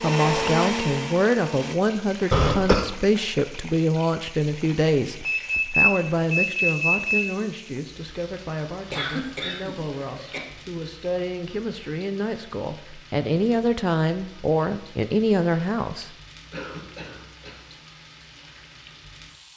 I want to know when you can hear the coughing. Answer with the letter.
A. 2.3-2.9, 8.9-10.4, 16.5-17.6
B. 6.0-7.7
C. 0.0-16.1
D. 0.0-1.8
A.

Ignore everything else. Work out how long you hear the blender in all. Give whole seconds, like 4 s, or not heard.
2 s.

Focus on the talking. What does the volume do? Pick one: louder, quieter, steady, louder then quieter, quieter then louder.
quieter then louder.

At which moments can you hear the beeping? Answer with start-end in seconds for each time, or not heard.
5.2-7.2.